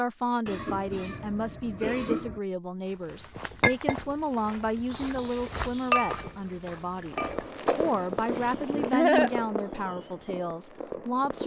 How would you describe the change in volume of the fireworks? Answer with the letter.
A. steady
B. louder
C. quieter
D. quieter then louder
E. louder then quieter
C.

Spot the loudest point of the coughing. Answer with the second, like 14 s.
9 s.